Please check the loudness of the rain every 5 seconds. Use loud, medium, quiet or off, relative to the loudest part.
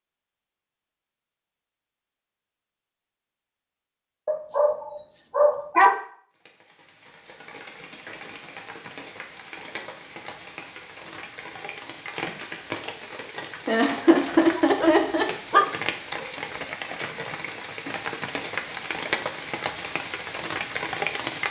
off, quiet, medium, loud, loud.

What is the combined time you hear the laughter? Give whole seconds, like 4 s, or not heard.
2 s.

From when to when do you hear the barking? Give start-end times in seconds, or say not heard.
4.2-6.0, 14.2-16.2.